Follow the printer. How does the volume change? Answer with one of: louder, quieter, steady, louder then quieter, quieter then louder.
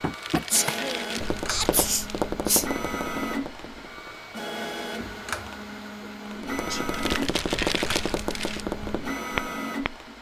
steady.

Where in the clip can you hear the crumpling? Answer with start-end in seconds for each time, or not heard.
0.1-2.3, 6.9-8.7.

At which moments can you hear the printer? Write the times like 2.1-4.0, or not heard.
0.0-10.1.